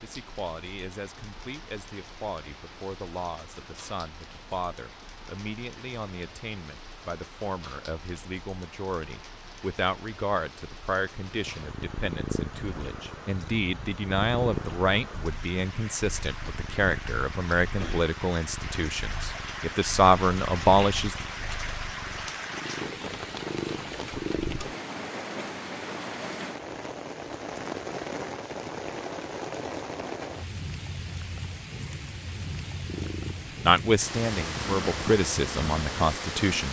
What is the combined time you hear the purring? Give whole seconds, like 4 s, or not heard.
17 s.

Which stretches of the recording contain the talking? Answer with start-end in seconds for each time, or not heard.
0.0-21.1, 33.6-36.6.